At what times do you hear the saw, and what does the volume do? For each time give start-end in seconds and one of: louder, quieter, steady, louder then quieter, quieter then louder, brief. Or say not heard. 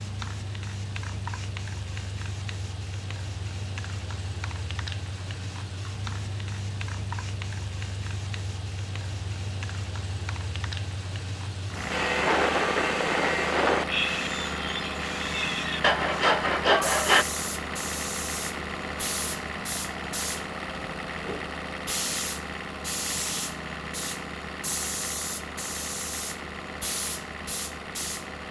11.9-17.2 quieter then louder.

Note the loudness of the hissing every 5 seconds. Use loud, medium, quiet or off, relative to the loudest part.
medium, medium, medium, loud, loud, loud.